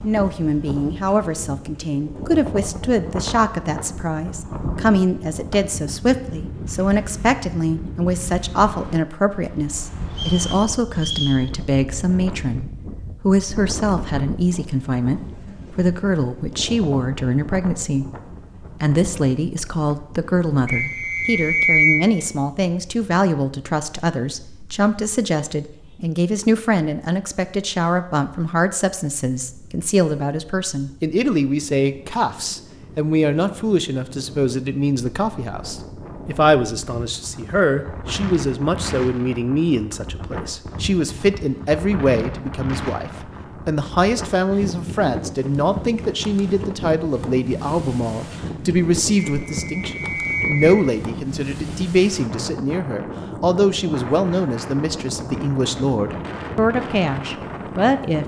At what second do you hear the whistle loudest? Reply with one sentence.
The volume of the whistle peaks at 22 seconds.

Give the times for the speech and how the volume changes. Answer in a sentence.
The speech can be heard from 0.0 to 18.1 s, at a steady volume; and from 18.8 to 58.2 s, at a steady volume.